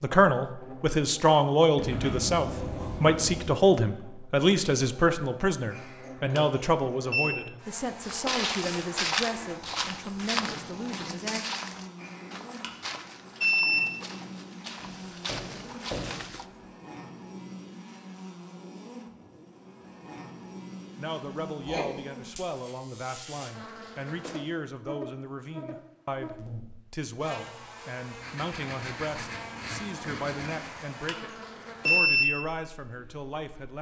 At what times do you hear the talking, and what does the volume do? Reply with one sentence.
You can hear the talking from 0.0 to 11.4 s, getting quieter; and from 20.9 to 33.7 s, at a steady volume.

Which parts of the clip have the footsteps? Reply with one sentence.
The footsteps can be heard from 8.0 to 16.4 s.